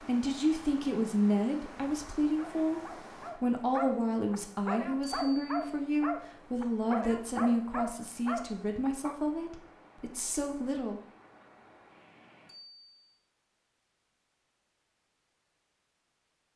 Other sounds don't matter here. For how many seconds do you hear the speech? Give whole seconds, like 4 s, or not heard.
11 s.